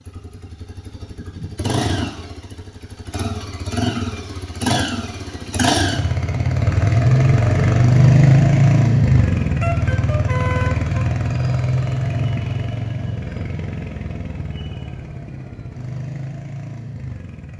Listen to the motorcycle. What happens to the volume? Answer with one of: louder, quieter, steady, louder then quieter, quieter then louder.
louder then quieter.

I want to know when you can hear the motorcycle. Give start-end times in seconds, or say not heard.
0.0-17.5.